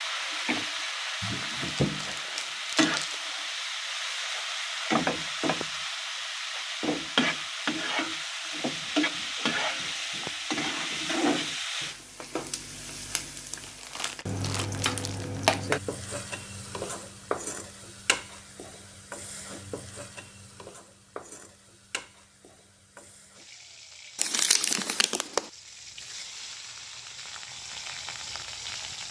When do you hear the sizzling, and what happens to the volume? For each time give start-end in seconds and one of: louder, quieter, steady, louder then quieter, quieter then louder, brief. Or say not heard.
0.0-29.0 quieter.